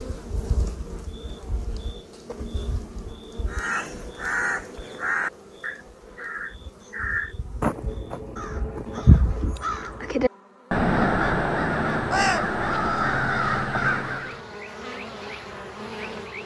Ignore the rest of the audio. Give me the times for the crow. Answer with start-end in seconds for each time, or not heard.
3.5-14.3.